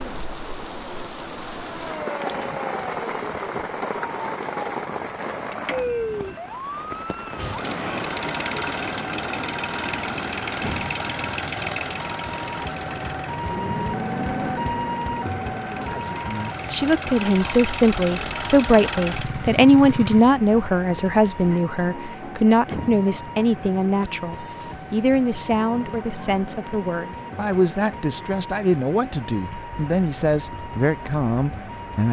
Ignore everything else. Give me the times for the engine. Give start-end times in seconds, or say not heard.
7.3-20.2.